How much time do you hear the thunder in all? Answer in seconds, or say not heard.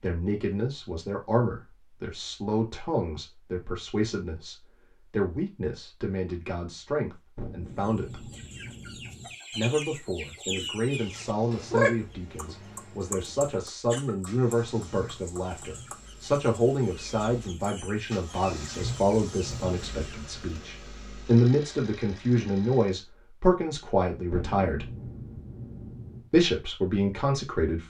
4 s.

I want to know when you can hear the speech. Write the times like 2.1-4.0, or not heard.
0.0-8.3, 9.5-24.9, 26.3-27.8.